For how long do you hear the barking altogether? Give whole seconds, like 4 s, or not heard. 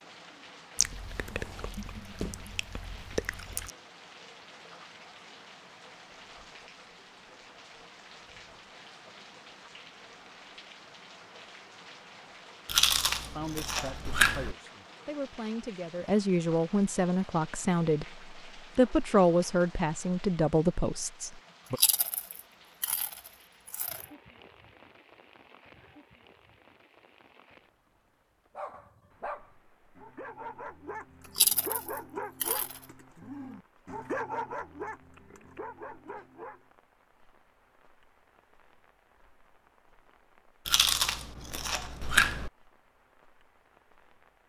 8 s.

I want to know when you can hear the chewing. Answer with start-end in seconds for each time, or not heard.
0.8-3.7, 12.7-14.6, 21.8-24.1, 31.4-32.8, 40.6-42.5.